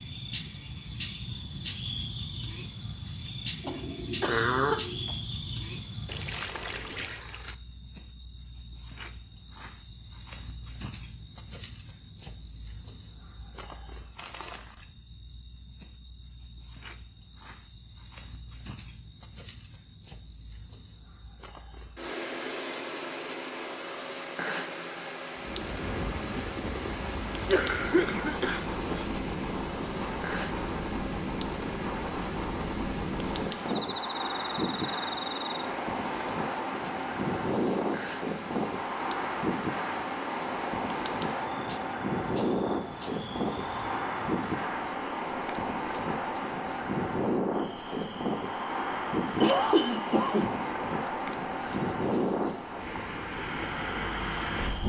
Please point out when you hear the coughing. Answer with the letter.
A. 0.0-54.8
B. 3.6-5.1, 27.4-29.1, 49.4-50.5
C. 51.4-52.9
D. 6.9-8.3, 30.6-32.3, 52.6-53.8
B.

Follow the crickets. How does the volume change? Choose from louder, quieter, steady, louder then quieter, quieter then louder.
quieter.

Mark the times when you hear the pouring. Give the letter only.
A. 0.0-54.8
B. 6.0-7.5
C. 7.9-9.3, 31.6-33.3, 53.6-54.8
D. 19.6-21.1
B.